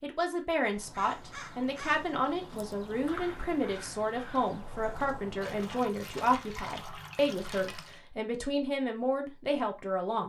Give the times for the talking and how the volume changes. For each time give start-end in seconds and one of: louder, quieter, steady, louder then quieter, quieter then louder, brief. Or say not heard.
0.0-10.2 steady.